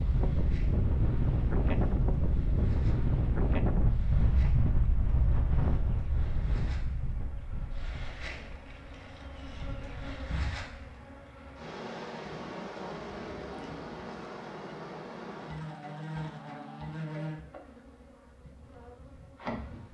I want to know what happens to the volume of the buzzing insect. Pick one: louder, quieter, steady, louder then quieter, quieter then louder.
louder.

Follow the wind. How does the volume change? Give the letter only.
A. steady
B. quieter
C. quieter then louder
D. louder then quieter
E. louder
B.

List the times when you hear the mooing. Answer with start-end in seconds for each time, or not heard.
12.2-14.1.